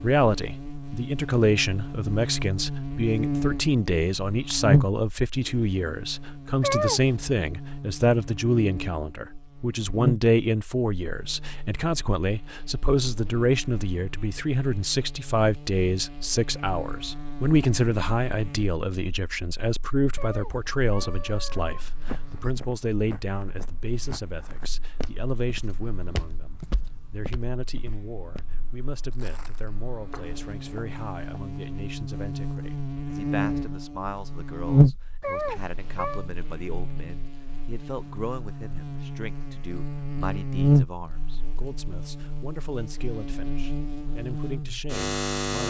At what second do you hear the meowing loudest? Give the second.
7 s.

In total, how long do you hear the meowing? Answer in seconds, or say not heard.
4 s.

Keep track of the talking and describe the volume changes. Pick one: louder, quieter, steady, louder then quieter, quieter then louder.
quieter.